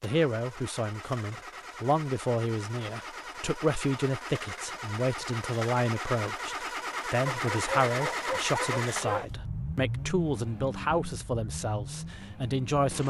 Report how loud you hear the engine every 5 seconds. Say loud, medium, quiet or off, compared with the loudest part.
medium, loud, medium.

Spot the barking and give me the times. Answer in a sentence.
You can hear the barking from 7.2 to 9.2 s.